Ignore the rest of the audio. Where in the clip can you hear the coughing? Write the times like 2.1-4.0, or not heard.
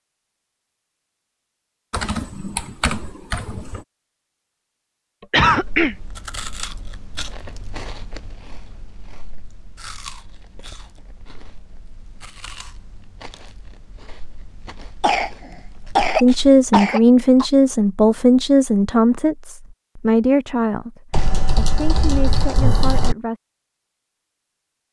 5.3-6.0, 15.0-17.4.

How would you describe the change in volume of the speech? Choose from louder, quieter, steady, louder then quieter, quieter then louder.
quieter.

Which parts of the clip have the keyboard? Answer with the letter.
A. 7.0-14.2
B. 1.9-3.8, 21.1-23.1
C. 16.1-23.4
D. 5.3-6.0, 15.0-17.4
B.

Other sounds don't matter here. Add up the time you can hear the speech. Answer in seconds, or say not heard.
7 s.